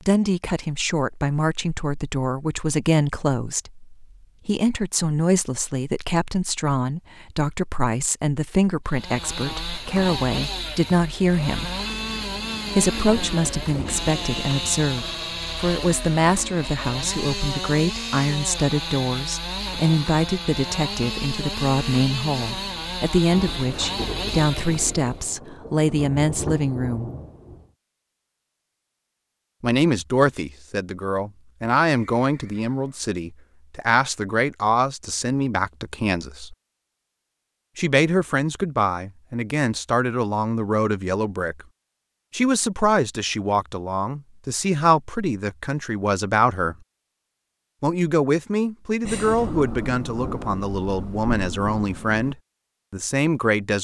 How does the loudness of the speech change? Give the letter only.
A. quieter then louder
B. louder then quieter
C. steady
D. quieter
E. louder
C.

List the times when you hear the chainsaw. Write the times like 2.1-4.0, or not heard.
8.8-25.2.